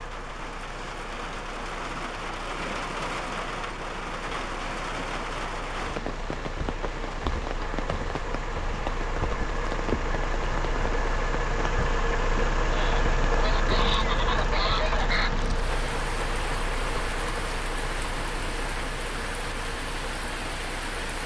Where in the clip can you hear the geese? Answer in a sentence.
You can hear the geese from 12.7 to 15.4 s.